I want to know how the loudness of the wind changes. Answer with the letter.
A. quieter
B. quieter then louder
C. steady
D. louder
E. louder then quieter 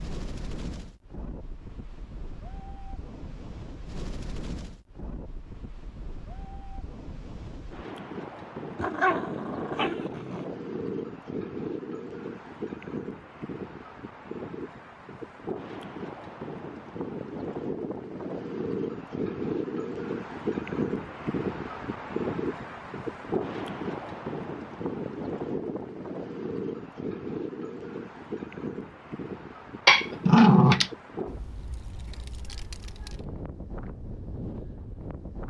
E.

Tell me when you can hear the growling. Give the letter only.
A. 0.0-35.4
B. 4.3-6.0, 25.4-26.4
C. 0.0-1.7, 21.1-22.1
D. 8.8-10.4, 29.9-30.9
D.